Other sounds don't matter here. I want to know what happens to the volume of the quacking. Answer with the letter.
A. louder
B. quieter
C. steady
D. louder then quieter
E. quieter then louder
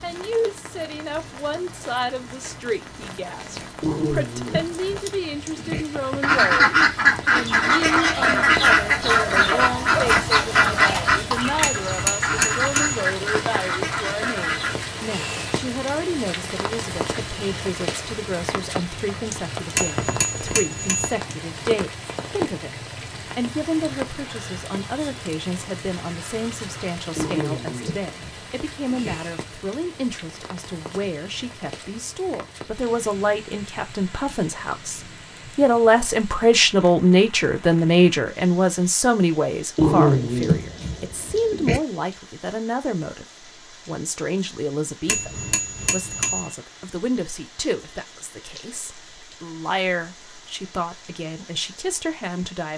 B.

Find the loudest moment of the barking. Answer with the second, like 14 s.
40 s.